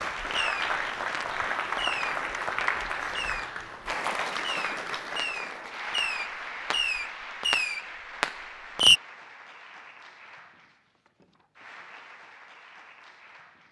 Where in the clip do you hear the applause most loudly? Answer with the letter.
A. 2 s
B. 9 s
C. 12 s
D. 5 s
A.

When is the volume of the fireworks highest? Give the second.
9 s.